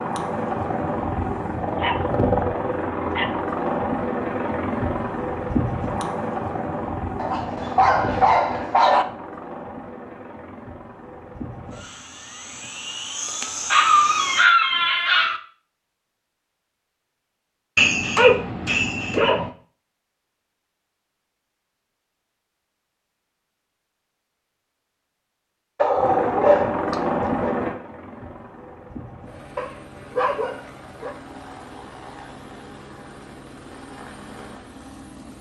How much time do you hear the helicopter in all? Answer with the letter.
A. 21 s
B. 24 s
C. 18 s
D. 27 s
B.